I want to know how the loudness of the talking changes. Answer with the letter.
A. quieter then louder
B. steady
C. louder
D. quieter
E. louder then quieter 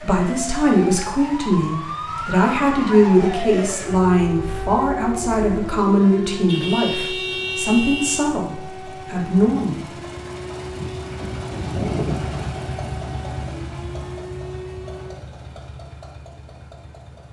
B.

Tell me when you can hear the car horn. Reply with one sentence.
You can hear the car horn from 6.5 to 8.2 s.